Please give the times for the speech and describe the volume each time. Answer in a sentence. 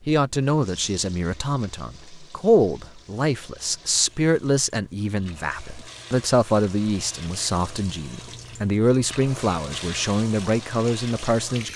The speech can be heard from 0.1 to 11.7 s, at a steady volume.